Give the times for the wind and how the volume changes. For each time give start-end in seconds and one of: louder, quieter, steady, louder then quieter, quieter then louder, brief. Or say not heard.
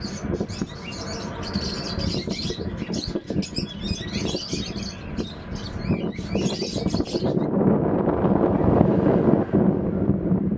0.0-10.5 louder.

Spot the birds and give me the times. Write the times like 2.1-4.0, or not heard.
0.0-7.5.